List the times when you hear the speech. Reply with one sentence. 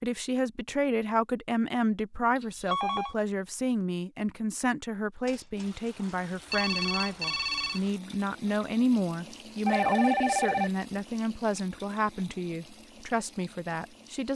You can hear the speech from 0.0 to 14.3 s.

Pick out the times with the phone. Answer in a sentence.
The phone can be heard from 2.4 to 3.1 s, from 5.2 to 5.7 s, from 6.5 to 7.8 s and from 9.7 to 10.7 s.